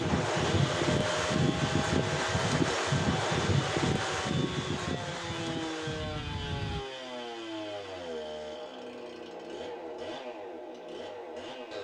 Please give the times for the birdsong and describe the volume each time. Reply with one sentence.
You can't hear the birdsong here.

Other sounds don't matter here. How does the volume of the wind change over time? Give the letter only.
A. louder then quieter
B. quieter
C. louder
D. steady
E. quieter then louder
B.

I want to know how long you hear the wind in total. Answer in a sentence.
You can hear the wind for 7 seconds altogether.